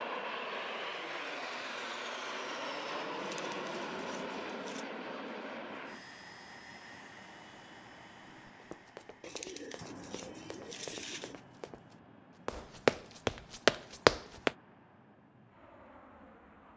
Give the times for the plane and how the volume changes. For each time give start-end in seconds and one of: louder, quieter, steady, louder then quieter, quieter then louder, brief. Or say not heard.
0.0-16.7 quieter.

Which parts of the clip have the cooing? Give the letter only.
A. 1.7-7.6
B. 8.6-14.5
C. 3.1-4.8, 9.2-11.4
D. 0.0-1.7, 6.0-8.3
C.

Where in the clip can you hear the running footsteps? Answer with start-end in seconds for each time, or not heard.
8.6-14.5.